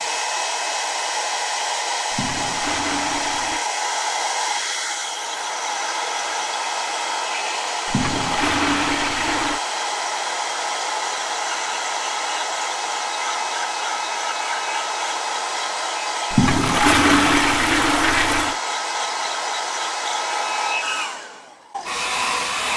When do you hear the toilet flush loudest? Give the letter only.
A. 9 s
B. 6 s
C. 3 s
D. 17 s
D.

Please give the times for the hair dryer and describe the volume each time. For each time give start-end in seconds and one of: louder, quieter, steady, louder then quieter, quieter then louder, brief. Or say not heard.
0.0-22.7 steady.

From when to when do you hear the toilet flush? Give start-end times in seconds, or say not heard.
2.1-3.6, 7.8-9.6, 16.3-18.6.